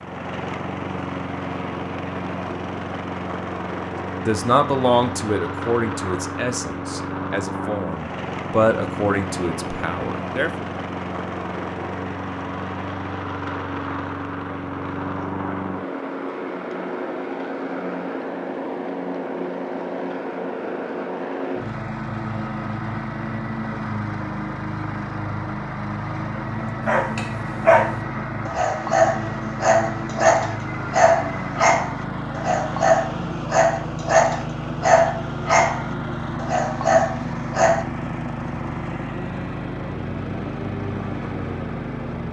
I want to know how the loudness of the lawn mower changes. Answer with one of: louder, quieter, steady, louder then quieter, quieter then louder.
steady.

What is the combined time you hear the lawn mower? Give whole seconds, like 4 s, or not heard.
42 s.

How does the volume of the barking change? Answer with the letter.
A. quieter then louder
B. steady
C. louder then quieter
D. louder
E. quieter
B.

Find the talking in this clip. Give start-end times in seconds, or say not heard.
4.2-10.5.